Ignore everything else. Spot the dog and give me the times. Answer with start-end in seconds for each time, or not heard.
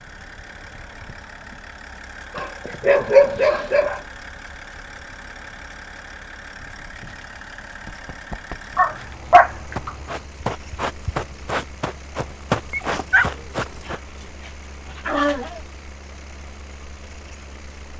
2.4-4.0, 8.8-9.9, 12.7-15.6.